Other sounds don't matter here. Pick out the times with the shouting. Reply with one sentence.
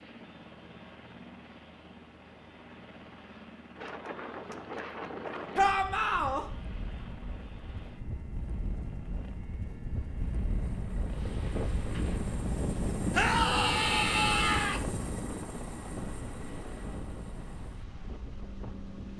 You can hear the shouting from 5.5 to 6.5 s and from 13.1 to 14.8 s.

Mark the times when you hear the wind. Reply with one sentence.
The wind can be heard from 3.8 to 19.1 s.